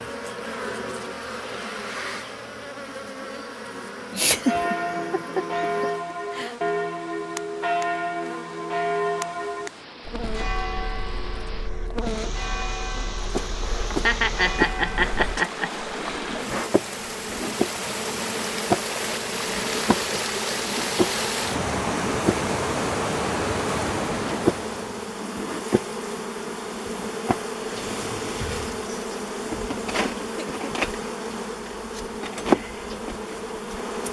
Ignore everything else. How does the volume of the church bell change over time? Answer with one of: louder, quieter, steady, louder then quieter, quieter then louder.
quieter.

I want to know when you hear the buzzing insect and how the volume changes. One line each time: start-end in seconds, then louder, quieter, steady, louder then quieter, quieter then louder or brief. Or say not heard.
0.0-34.0 louder.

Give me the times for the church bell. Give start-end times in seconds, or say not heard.
4.5-15.4.